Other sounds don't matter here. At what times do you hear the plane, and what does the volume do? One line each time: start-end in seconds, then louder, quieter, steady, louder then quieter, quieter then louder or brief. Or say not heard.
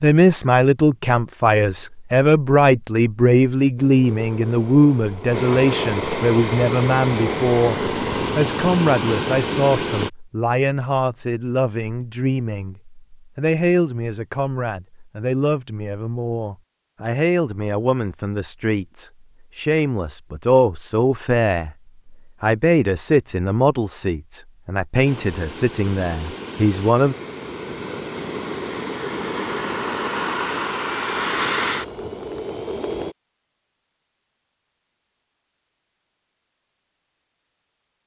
3.8-10.1 louder
25.1-33.1 louder.